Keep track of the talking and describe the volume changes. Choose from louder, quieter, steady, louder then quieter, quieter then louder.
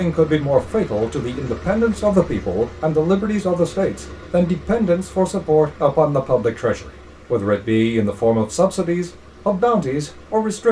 steady.